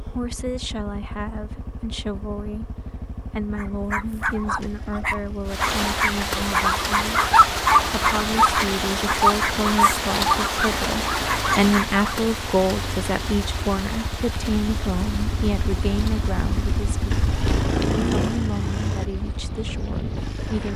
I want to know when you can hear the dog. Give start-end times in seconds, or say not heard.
3.5-12.1.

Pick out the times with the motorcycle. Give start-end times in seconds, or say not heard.
0.0-20.7.